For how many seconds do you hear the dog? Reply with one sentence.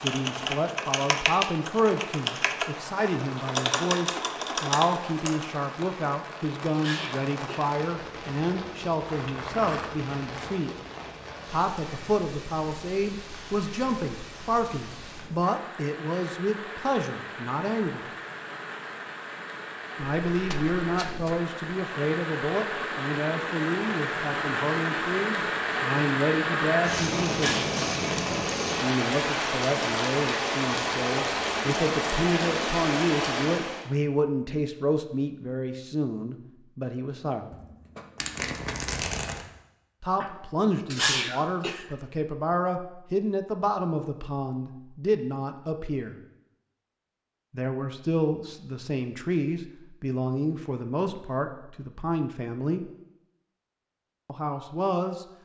The dog can't be heard in this clip.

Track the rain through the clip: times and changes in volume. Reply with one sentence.
The rain can be heard from 0.0 to 33.9 s, getting louder.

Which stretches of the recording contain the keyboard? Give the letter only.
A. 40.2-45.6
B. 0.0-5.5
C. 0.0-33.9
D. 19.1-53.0
B.